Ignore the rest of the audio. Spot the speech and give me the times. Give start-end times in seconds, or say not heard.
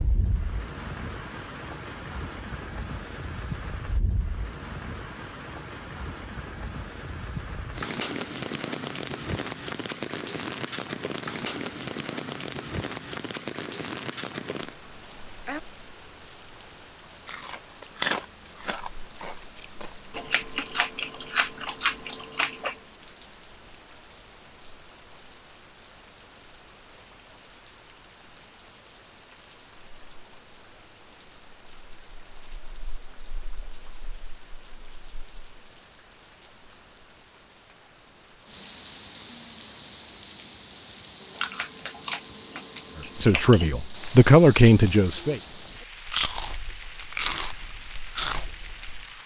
43.1-45.4.